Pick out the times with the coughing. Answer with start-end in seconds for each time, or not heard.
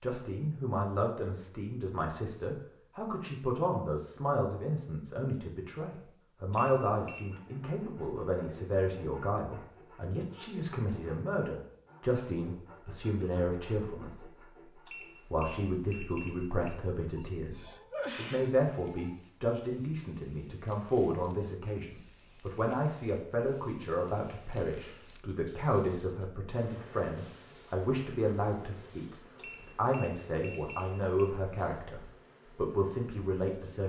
17.1-19.2.